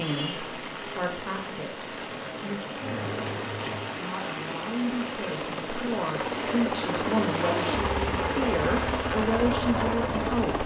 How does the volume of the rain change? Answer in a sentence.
The volume of the rain stays about the same.